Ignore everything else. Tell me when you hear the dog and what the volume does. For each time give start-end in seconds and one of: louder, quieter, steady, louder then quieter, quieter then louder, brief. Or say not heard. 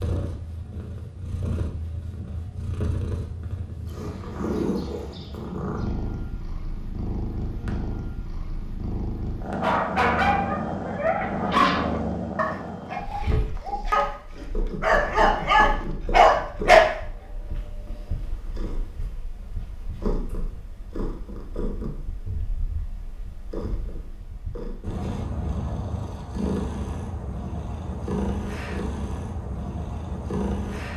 9.6-16.9 quieter then louder.